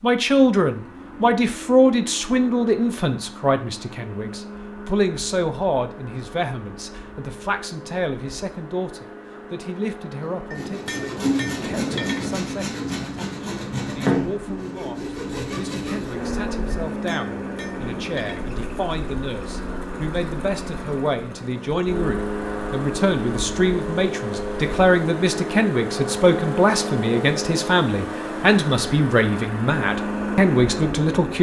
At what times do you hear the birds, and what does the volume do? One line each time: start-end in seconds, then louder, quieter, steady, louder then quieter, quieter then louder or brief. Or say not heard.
not heard.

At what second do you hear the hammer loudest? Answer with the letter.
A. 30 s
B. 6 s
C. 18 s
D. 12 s
D.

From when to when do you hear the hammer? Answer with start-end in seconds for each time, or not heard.
10.5-12.4, 16.9-18.6.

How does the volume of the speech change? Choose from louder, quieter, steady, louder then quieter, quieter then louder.
quieter then louder.